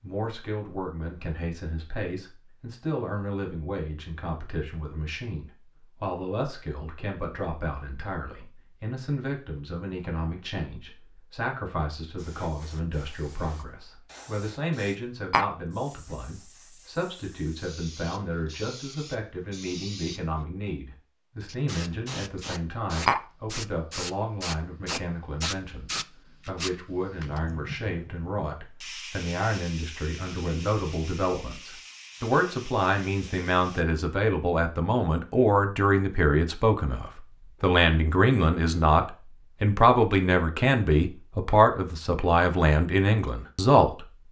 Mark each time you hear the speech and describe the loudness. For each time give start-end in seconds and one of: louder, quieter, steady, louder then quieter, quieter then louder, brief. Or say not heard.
0.0-44.0 louder.